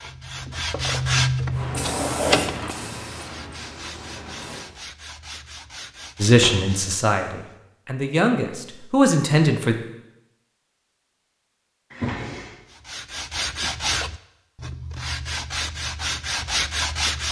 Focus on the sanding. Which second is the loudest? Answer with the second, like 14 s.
1 s.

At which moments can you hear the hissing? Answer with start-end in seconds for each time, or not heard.
1.5-4.7.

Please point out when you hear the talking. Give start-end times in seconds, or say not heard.
6.2-9.8.